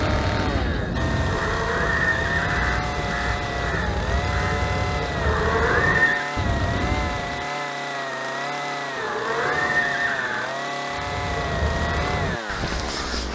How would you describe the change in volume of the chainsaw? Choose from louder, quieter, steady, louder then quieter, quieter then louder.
steady.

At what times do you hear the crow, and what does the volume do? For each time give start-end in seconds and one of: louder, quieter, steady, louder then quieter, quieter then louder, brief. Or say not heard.
0.0-7.5 steady
10.9-13.2 brief.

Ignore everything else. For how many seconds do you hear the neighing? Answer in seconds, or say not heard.
4 s.